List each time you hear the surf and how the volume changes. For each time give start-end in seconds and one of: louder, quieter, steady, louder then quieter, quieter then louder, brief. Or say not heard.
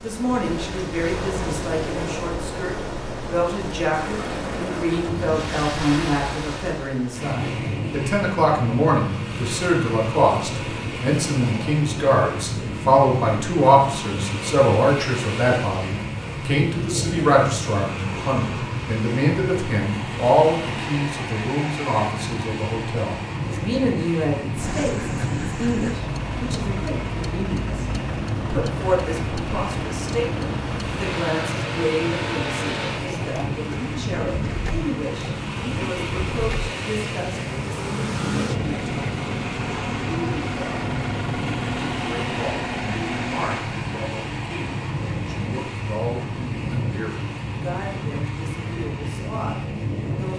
0.0-50.3 steady.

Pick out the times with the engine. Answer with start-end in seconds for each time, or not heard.
24.6-43.6.